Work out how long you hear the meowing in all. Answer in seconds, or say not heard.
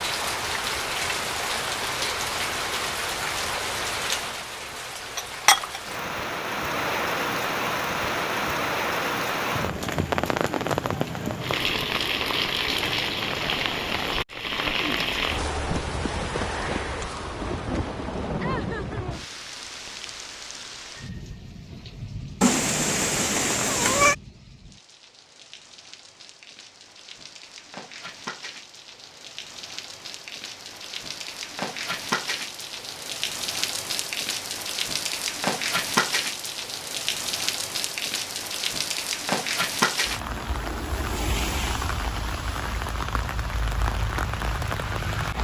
2 s.